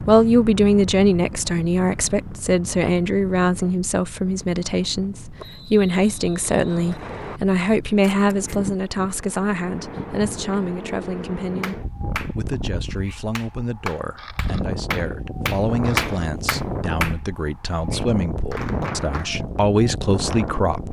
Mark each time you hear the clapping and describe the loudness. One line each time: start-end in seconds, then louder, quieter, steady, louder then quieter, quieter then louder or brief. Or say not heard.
11.6-19.4 louder then quieter.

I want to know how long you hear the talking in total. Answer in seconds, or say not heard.
21 s.